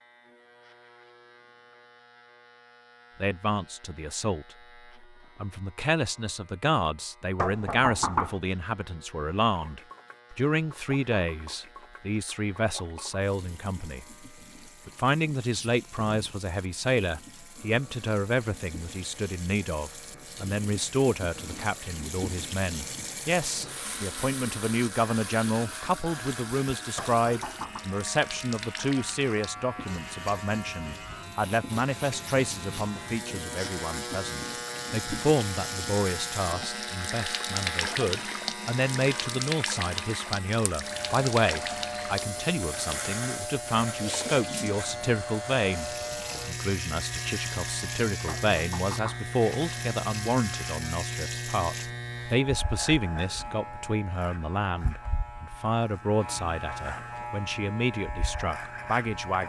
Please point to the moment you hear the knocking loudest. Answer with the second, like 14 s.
8 s.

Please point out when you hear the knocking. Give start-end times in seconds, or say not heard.
7.3-8.3, 26.9-27.9, 48.2-49.2.